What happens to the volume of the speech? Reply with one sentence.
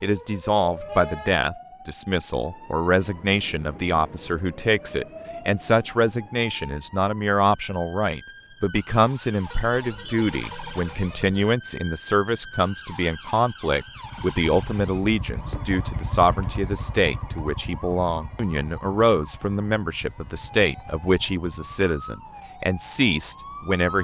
The volume of the speech stays about the same.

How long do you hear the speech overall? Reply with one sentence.
You can hear the speech for 24 seconds altogether.